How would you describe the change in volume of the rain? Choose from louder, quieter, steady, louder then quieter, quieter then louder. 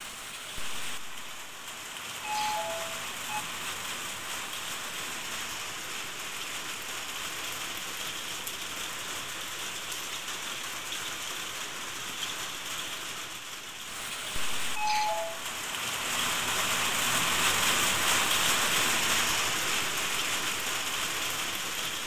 louder.